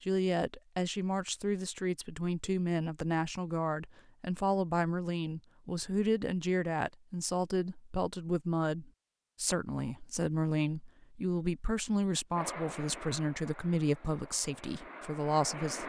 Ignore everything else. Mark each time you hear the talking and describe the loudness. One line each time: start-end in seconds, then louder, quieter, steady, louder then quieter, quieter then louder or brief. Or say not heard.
0.0-15.8 steady.